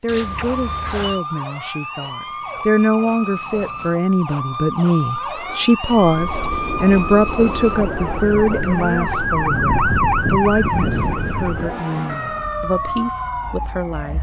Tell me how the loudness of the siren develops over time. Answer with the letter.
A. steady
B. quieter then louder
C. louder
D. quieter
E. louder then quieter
E.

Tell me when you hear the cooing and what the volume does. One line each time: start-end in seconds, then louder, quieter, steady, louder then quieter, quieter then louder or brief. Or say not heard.
not heard.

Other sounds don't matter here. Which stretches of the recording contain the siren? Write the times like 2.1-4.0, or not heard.
0.1-14.1.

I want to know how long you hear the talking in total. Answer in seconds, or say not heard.
14 s.